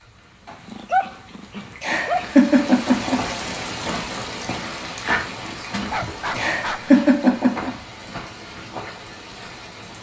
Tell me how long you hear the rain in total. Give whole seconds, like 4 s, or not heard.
10 s.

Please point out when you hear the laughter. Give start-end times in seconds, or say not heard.
1.8-3.4, 6.3-7.7.